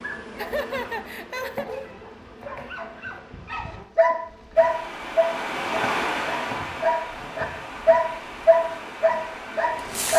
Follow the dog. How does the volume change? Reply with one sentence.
The volume of the dog goes up.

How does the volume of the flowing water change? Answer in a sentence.
The loudness of the flowing water goes down.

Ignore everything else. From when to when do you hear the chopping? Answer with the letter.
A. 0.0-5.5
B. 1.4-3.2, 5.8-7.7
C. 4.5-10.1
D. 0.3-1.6
B.